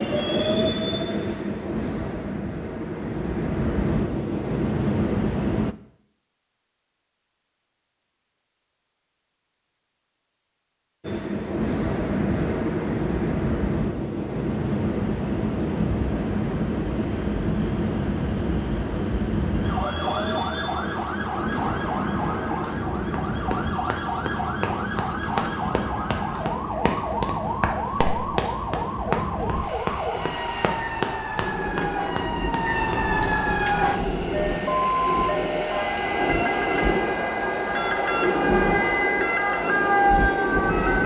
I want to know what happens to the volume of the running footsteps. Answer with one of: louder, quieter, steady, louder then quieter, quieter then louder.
steady.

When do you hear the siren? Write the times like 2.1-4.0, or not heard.
19.6-41.0.